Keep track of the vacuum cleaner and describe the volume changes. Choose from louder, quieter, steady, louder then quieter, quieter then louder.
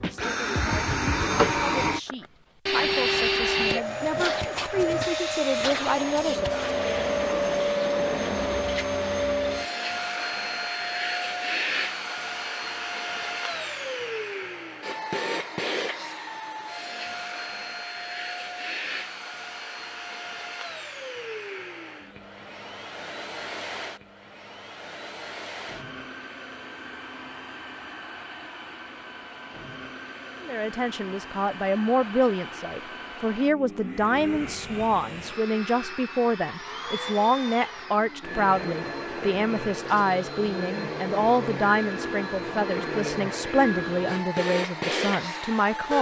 quieter then louder.